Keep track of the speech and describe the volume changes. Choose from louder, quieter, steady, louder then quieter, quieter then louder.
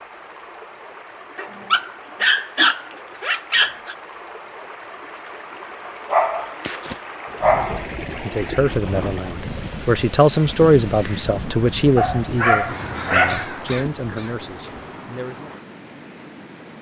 louder then quieter.